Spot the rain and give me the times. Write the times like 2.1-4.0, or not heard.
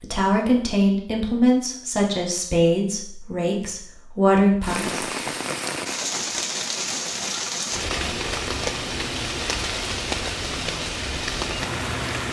4.6-12.2.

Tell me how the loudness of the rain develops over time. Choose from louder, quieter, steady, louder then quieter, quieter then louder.
steady.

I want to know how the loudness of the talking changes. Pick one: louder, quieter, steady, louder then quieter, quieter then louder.
quieter then louder.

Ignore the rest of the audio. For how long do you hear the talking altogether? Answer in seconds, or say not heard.
5 s.